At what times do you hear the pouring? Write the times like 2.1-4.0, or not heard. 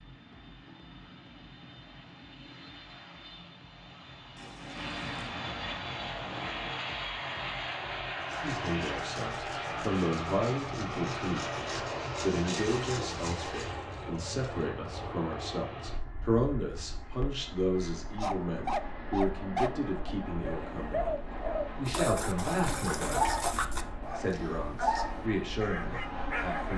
4.3-5.3, 12.5-14.7, 21.8-23.9.